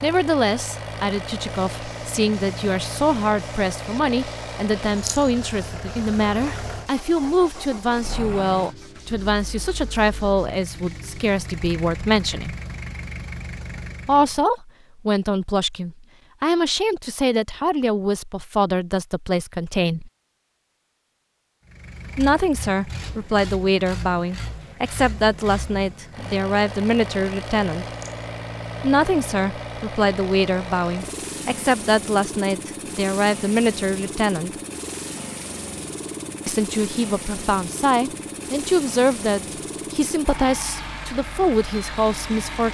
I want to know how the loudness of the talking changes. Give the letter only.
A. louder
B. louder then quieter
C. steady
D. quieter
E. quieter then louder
C.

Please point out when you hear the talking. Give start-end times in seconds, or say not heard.
0.0-12.6, 14.1-20.1, 22.1-27.9, 28.8-34.5, 36.5-42.6.